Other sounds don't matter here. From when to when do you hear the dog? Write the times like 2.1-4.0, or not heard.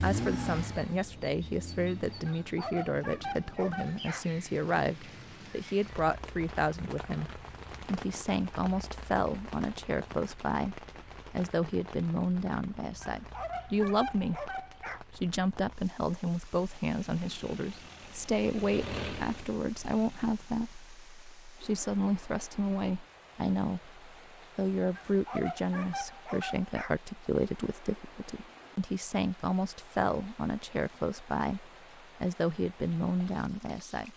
2.2-4.2, 13.2-15.0, 24.9-26.9.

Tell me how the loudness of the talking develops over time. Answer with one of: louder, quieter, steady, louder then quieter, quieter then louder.
steady.